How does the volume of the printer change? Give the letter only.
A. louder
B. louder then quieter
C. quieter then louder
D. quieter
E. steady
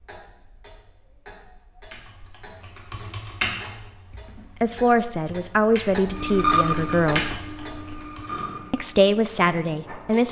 D.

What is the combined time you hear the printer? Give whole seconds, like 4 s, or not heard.
4 s.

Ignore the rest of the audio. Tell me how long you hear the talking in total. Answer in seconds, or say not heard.
4 s.